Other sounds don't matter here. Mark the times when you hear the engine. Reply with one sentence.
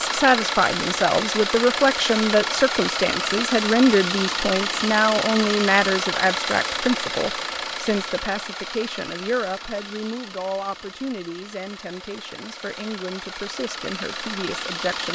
The engine can be heard from 0.0 to 15.1 s.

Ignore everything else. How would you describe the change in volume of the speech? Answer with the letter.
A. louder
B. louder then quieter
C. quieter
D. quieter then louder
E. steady
C.